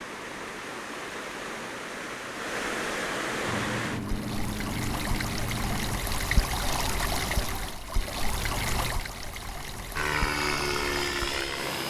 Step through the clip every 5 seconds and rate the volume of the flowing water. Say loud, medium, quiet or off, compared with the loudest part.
loud, loud, medium.